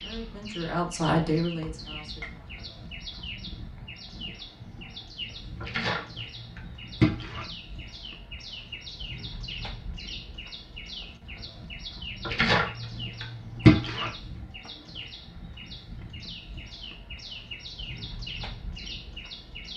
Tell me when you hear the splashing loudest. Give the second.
14 s.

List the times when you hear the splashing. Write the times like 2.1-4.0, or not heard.
5.6-7.5, 12.2-14.1.